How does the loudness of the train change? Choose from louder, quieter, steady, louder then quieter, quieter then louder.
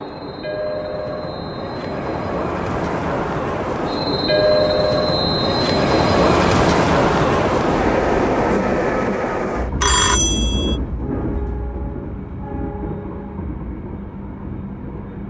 louder then quieter.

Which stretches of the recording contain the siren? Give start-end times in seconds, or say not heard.
not heard.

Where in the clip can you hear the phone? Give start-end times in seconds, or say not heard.
9.8-10.8.